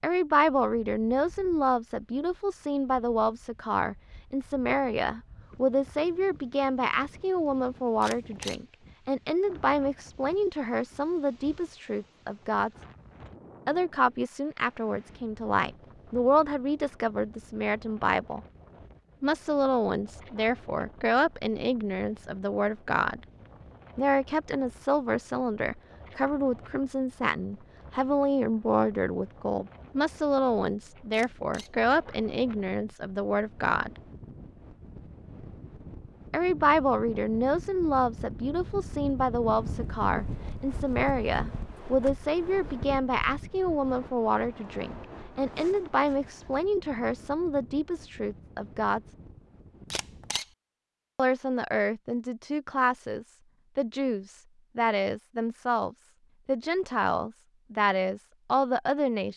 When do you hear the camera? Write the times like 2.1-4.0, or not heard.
8.0-8.6, 31.1-31.7, 49.9-50.5.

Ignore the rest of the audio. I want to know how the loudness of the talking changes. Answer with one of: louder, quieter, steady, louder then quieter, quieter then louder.
steady.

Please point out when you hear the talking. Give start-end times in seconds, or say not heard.
0.0-12.7, 13.7-18.4, 19.2-23.2, 23.9-34.0, 36.3-49.0, 51.1-59.3.